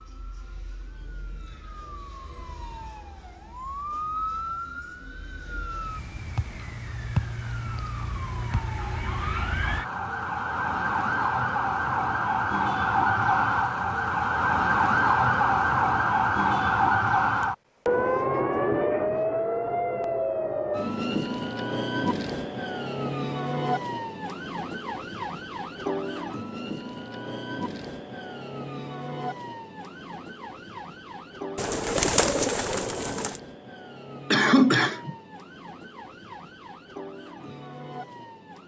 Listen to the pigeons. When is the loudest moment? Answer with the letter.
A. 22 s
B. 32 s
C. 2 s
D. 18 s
B.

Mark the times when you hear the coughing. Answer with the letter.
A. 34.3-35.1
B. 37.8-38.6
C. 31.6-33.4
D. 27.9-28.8
A.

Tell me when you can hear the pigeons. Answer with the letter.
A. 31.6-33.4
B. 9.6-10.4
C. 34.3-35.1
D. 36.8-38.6
A.